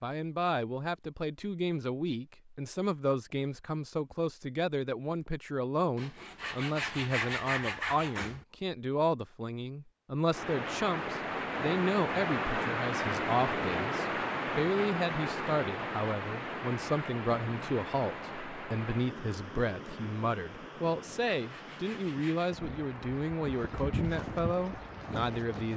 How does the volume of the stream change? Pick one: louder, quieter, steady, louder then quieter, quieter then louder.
quieter.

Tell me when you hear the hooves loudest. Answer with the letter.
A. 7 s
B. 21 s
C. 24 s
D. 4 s
C.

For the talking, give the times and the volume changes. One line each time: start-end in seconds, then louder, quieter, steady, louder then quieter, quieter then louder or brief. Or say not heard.
0.0-25.7 steady.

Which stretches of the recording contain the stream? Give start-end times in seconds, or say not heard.
10.3-25.7.